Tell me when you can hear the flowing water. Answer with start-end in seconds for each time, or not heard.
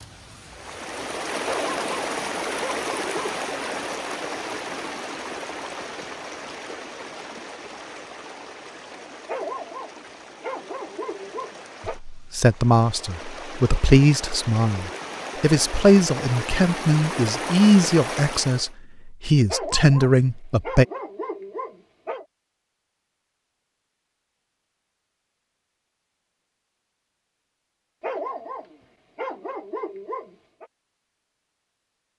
0.0-18.8.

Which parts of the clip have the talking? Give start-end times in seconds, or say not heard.
11.8-20.9.